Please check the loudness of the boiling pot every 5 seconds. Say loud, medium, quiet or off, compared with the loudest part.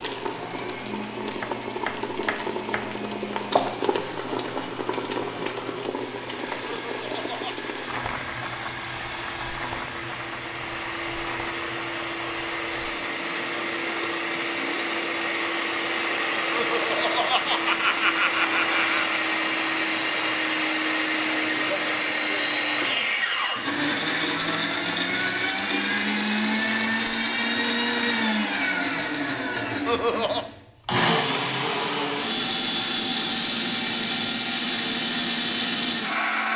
loud, loud, medium, quiet, quiet, off, off, off.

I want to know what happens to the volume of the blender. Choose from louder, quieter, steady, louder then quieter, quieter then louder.
louder.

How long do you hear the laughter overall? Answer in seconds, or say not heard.
4 s.